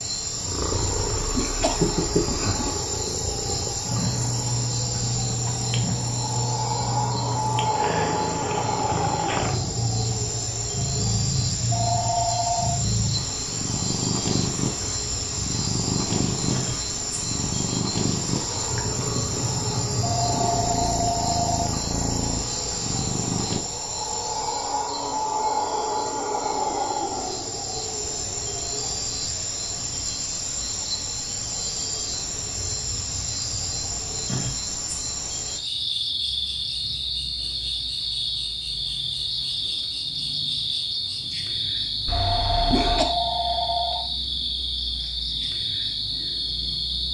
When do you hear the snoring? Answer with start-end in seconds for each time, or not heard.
not heard.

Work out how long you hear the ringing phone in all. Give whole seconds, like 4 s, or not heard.
5 s.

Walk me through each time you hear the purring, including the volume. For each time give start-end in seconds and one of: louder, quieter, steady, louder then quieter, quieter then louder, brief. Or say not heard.
0.2-23.6 steady.